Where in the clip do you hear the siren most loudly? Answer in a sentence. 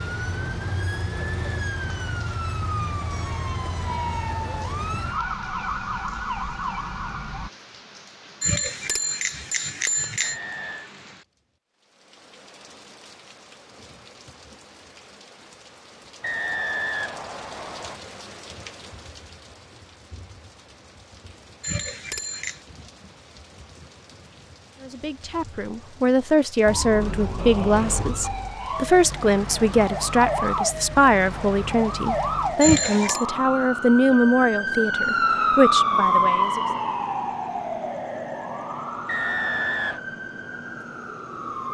The volume of the siren peaks at 36 seconds.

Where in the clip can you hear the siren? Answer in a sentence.
You can hear the siren from 0.0 to 7.5 s and from 26.6 to 41.7 s.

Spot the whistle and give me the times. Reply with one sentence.
The whistle can be heard from 10.2 to 10.9 s, from 16.2 to 18.0 s and from 39.0 to 40.0 s.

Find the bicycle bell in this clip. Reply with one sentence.
The bicycle bell can be heard from 8.4 to 10.3 s, from 21.6 to 22.6 s and from 32.6 to 33.2 s.